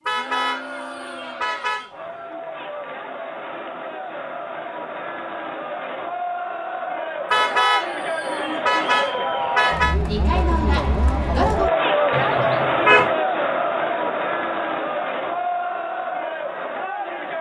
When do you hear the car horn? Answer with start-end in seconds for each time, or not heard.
0.1-1.9, 7.3-9.9, 12.1-13.1.